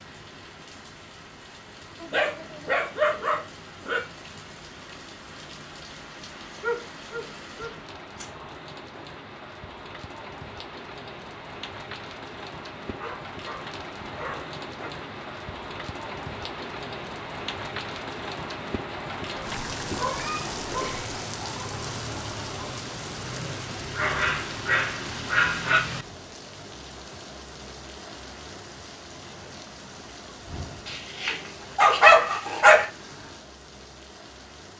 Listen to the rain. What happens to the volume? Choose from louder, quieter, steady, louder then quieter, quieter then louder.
louder then quieter.